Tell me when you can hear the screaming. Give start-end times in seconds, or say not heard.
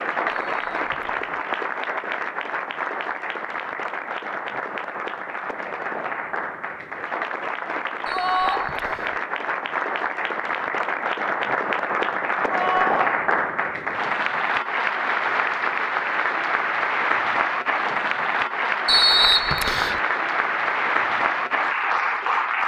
8.1-8.7, 12.5-13.2.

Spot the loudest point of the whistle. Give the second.
19 s.